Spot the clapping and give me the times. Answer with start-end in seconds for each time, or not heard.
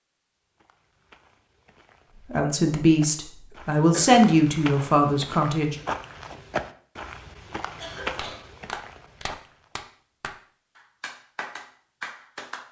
8.2-12.6.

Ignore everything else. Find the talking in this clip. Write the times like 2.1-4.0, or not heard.
2.1-5.8.